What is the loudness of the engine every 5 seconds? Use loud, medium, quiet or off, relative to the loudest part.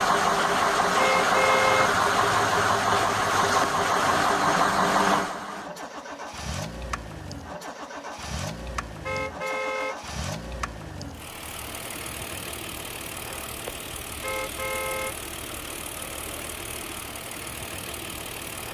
loud, medium, quiet, quiet.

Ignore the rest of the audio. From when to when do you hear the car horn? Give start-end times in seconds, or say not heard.
0.9-1.9, 9.0-10.0, 14.2-15.2.